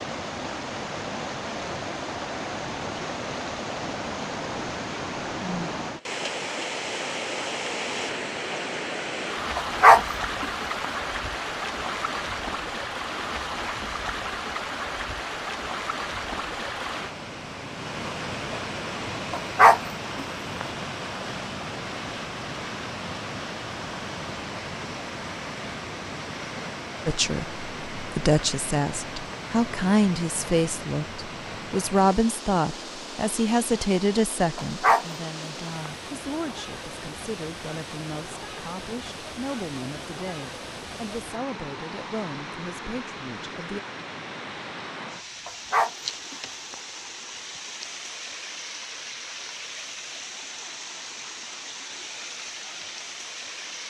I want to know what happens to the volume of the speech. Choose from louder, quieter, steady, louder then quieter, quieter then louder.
quieter.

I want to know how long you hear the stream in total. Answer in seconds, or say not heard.
54 s.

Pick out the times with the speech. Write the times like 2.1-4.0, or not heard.
27.1-43.8.